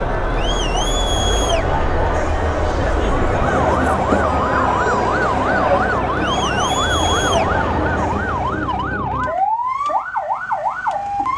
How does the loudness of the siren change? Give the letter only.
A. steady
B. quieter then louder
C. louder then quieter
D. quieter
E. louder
E.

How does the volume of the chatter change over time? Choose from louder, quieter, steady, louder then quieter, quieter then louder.
steady.